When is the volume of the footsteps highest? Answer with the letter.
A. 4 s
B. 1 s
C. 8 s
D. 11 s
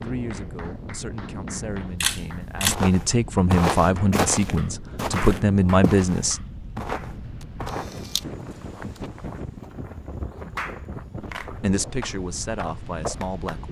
A.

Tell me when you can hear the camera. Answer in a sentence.
You can hear the camera from 2.0 to 2.8 s and from 7.7 to 8.2 s.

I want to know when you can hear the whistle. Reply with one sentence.
You can't hear the whistle here.